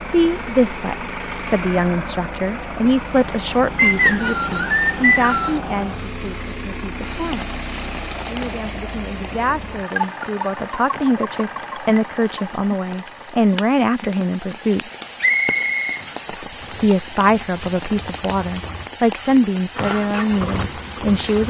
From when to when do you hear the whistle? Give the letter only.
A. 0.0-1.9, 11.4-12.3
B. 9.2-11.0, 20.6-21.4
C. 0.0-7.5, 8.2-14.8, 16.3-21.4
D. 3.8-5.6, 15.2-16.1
D.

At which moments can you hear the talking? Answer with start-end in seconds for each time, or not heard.
0.0-7.5, 8.2-14.8, 16.3-21.4.